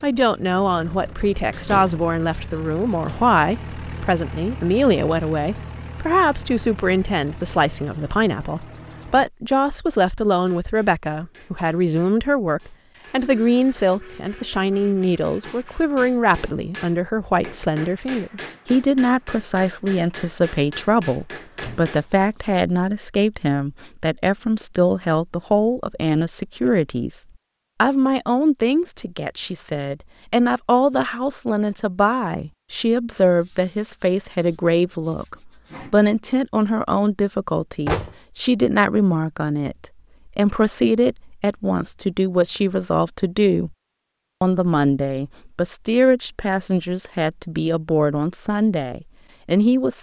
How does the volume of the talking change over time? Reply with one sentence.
The loudness of the talking stays about the same.